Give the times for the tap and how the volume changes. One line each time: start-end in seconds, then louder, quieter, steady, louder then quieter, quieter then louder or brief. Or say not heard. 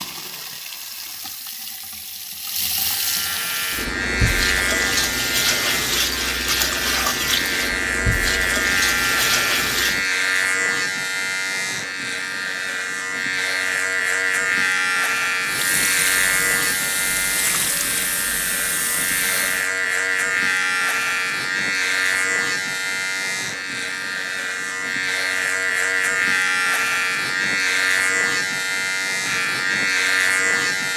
0.0-10.1 louder
15.4-19.7 steady.